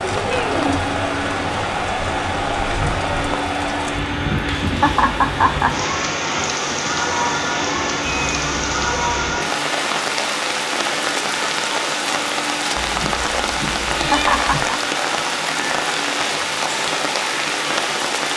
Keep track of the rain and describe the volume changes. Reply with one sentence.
The volume of the rain stays about the same.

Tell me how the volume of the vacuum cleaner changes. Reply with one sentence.
The volume of the vacuum cleaner stays about the same.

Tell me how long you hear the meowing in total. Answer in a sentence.
The meowing can be heard for 4 seconds in total.